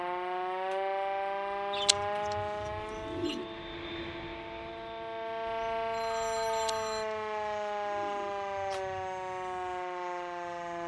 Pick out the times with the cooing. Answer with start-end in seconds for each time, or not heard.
1.7-3.5, 6.5-8.9.